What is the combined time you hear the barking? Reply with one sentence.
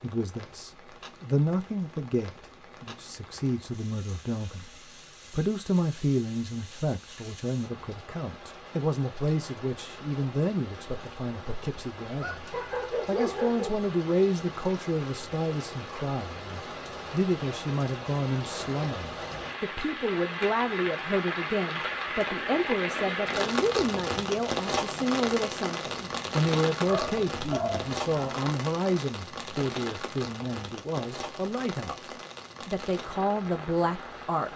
The barking can be heard for 3 seconds in total.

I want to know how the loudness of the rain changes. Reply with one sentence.
The loudness of the rain goes up, then down.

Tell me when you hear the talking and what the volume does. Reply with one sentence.
The talking can be heard from 0.0 to 34.5 s, at a steady volume.